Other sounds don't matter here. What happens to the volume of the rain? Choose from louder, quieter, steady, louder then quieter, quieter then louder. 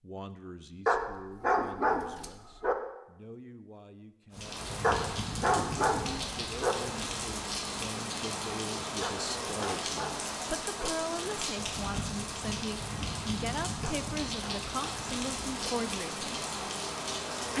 steady.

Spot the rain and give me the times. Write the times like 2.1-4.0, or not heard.
4.3-17.5.